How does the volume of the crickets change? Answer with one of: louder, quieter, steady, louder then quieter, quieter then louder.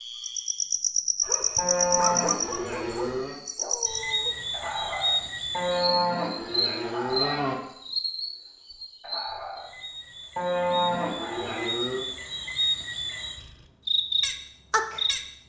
quieter then louder.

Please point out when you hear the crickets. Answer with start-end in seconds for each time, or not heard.
0.0-15.2.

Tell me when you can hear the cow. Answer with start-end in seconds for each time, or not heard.
1.6-3.4, 5.5-7.5, 10.3-12.1.